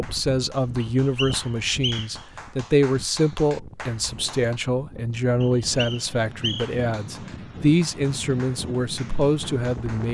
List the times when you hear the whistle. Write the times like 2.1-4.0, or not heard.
0.8-2.2, 5.4-6.8.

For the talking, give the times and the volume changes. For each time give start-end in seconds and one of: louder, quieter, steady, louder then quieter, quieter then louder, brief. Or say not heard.
0.0-10.1 steady.